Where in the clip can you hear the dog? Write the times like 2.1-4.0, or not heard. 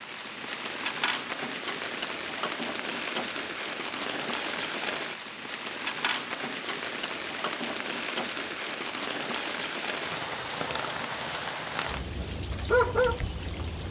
12.7-13.2.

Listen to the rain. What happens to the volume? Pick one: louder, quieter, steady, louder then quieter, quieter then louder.
steady.